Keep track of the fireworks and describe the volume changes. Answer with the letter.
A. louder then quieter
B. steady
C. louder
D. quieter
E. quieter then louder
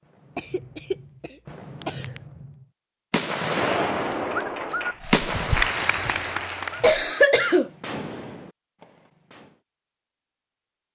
A.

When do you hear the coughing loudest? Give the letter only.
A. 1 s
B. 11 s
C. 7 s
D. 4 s
C.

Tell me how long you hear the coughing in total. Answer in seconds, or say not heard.
3 s.